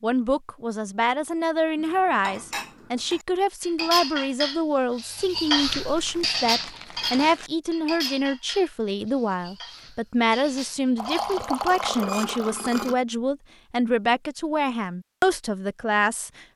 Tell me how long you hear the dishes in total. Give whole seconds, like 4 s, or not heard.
11 s.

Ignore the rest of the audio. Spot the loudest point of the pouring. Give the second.
12 s.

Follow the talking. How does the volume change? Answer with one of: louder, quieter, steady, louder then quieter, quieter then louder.
steady.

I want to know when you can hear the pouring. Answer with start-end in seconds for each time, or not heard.
10.9-12.9.